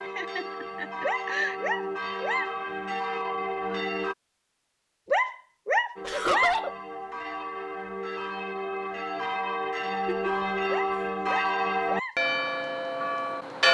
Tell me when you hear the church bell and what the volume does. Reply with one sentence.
You can hear the church bell from 0.0 to 4.2 s, getting louder; and from 6.0 to 13.7 s, getting louder.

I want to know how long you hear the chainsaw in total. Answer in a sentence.
You can't hear the chainsaw here.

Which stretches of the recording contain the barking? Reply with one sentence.
You can hear the barking from 1.0 to 2.5 s, from 5.0 to 6.6 s and from 10.7 to 12.2 s.